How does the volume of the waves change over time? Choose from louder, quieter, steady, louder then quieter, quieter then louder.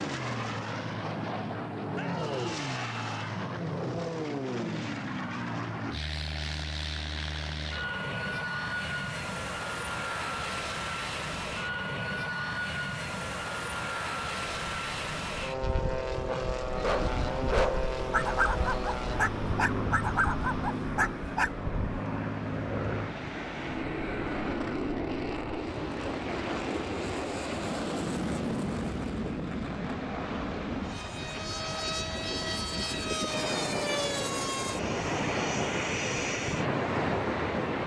louder.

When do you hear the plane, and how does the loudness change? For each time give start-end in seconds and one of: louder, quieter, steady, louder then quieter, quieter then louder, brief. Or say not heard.
0.0-37.8 steady.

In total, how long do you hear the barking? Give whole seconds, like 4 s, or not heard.
5 s.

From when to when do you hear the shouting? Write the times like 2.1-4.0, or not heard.
1.9-3.4.